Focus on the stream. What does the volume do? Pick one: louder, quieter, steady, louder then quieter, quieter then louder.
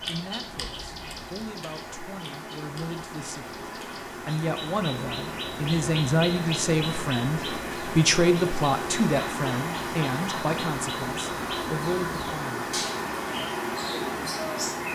louder.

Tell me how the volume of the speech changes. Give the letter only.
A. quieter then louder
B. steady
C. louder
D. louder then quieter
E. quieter
D.